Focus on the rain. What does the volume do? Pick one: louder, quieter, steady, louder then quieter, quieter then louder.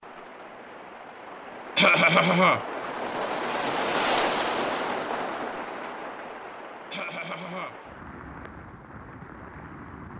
louder then quieter.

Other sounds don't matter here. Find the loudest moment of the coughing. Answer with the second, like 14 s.
2 s.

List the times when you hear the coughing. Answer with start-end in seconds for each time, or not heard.
1.8-2.6, 6.9-7.8.